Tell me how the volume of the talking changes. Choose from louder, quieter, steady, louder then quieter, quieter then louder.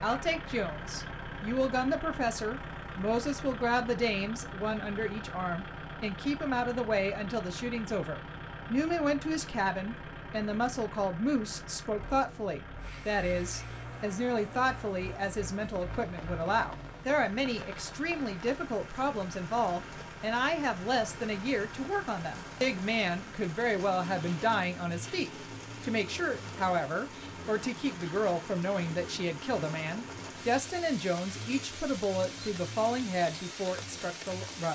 steady.